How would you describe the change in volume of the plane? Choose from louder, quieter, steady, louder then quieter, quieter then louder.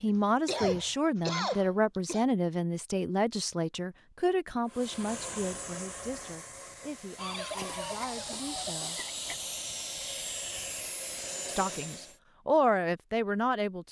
quieter then louder.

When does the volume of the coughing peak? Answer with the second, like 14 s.
1 s.